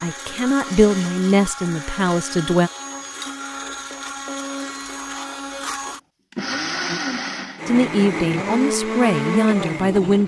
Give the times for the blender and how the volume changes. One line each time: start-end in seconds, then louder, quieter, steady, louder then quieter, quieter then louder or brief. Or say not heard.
0.0-10.2 louder.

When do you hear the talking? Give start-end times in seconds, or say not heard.
0.0-2.7, 7.7-10.2.